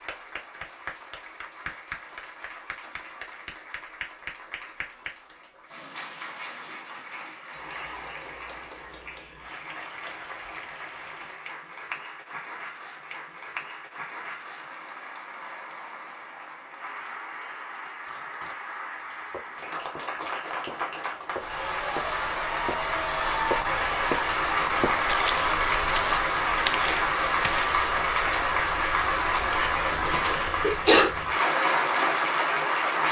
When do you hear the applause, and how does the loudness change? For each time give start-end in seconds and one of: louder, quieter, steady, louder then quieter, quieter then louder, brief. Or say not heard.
0.0-33.0 louder.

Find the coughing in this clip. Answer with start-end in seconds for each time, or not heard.
30.1-31.1.